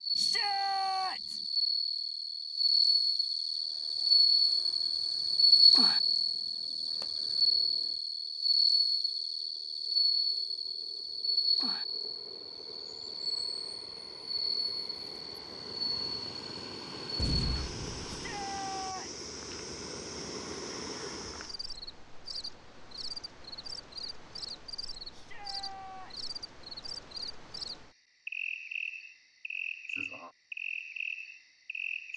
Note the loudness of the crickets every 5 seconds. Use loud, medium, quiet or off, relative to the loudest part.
loud, loud, medium, quiet, quiet, quiet, quiet.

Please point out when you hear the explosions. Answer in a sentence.
You can hear the explosions from 17.1 to 18.4 s.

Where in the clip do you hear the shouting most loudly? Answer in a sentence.
The loudest moment of the shouting is at 1 second.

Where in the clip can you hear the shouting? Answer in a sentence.
The shouting can be heard from 0.1 to 1.4 s, from 18.1 to 19.2 s and from 25.1 to 26.3 s.